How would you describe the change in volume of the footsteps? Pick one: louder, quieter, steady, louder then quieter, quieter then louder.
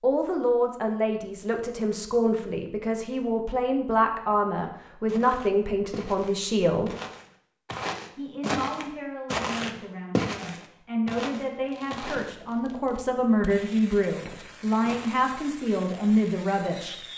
louder then quieter.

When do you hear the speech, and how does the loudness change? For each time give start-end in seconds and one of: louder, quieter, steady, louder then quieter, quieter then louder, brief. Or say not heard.
0.0-7.0 steady
8.2-16.9 louder.